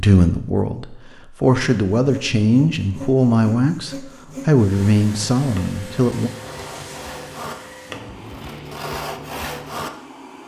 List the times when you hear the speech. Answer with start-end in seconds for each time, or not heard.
0.0-6.3.